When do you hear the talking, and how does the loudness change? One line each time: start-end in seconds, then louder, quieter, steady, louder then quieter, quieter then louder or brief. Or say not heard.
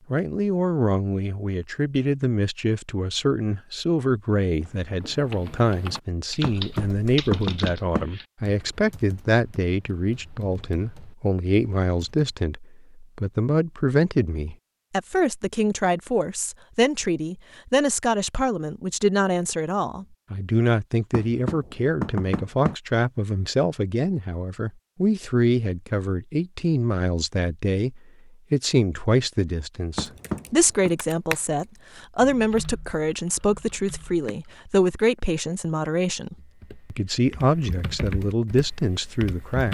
0.1-39.6 steady.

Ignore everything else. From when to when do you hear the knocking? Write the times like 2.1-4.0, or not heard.
6.4-8.1, 21.1-22.8, 29.9-30.9.